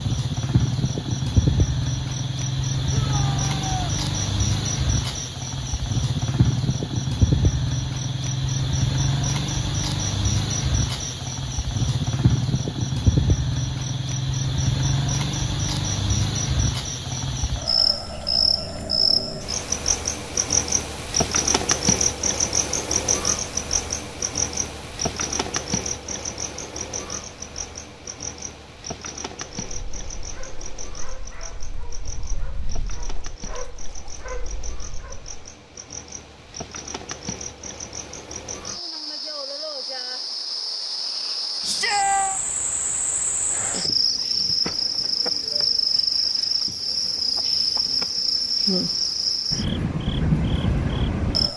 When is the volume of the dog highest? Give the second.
34 s.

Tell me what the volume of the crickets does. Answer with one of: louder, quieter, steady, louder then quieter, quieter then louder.
quieter then louder.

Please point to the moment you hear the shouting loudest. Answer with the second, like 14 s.
42 s.